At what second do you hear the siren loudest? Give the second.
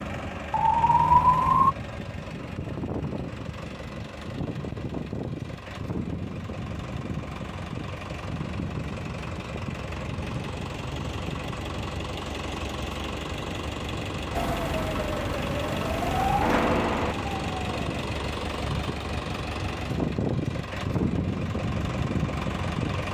1 s.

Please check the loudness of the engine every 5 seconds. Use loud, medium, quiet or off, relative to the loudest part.
medium, medium, medium, loud, loud.